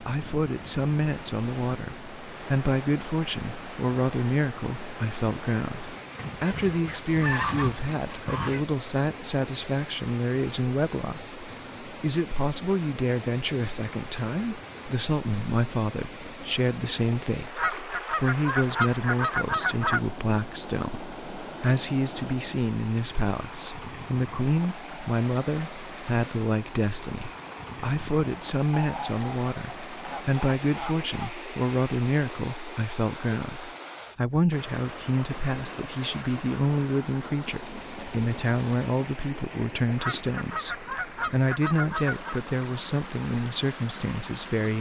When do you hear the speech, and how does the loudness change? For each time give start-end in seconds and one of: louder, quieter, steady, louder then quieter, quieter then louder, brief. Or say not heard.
0.0-44.7 steady.